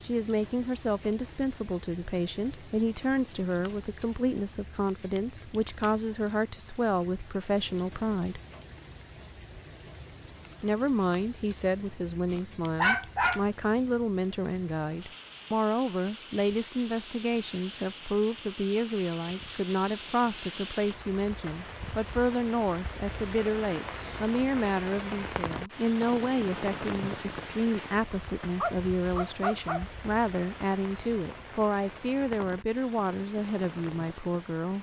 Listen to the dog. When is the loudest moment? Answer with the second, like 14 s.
13 s.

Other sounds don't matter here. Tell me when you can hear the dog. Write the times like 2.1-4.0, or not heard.
12.3-13.4, 28.6-29.9.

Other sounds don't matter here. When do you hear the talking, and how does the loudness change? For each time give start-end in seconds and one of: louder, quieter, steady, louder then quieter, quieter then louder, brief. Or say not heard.
0.0-8.4 steady
10.6-34.7 steady.